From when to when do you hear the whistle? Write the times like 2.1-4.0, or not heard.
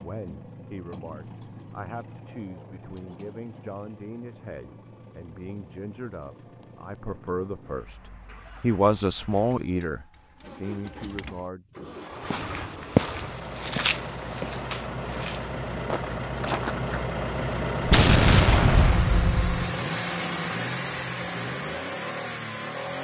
not heard.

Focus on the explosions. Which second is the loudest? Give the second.
18 s.